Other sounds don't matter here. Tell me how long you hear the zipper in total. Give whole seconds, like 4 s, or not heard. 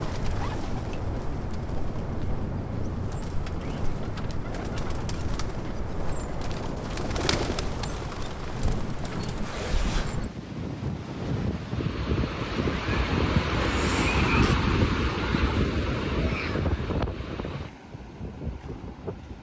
2 s.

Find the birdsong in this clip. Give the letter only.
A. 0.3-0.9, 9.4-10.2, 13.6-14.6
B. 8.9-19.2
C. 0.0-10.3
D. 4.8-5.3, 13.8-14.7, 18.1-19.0
C.